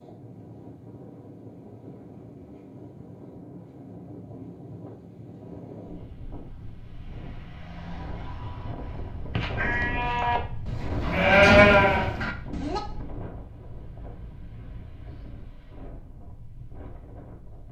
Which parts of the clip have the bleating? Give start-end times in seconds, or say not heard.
9.3-12.8.